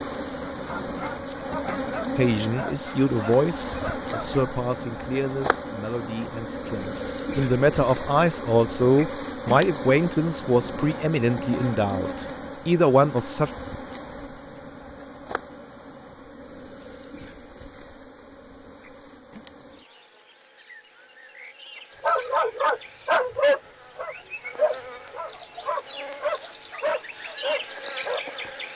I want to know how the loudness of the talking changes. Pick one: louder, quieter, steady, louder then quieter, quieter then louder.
quieter then louder.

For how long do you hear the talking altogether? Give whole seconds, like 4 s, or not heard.
11 s.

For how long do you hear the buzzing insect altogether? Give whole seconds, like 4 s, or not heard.
29 s.